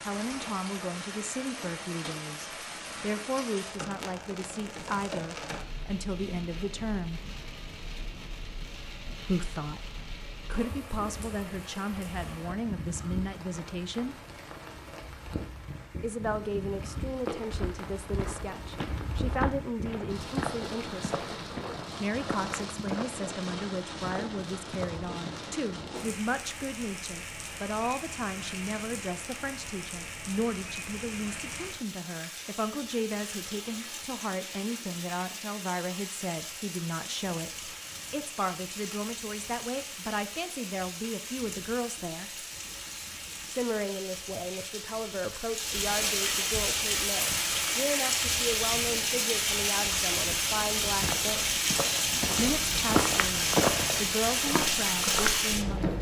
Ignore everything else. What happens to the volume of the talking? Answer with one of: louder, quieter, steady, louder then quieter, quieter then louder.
steady.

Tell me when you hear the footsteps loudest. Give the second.
54 s.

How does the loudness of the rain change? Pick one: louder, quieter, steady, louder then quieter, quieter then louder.
louder.